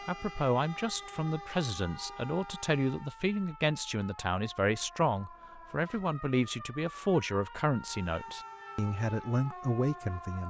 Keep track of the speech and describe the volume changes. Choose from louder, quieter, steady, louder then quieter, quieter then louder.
steady.